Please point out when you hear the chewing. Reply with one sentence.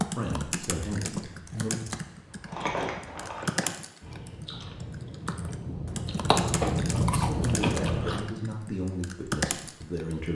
You can hear the chewing from 1.2 to 8.3 s.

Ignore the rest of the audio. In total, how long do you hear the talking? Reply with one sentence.
You can hear the talking for 5 seconds altogether.